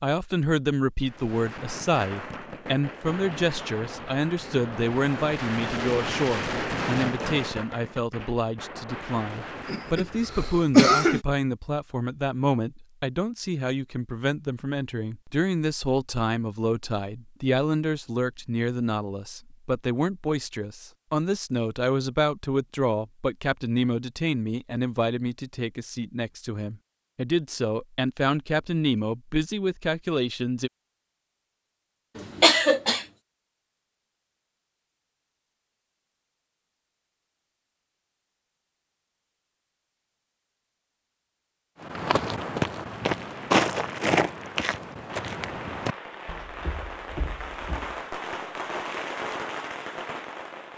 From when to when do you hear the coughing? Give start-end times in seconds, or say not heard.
9.7-11.2, 32.1-33.0.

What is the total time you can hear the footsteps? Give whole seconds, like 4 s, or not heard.
6 s.